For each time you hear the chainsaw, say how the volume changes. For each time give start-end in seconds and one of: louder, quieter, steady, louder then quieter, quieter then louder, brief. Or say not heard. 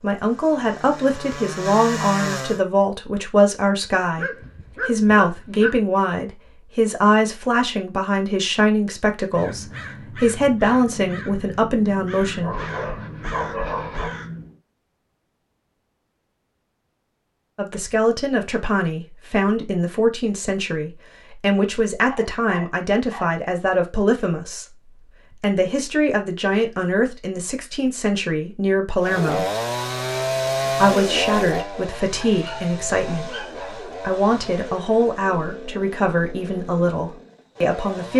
0.0-2.6 brief
29.0-38.1 quieter.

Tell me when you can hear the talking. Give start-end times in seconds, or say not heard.
0.0-12.6, 17.6-29.5, 30.8-38.1.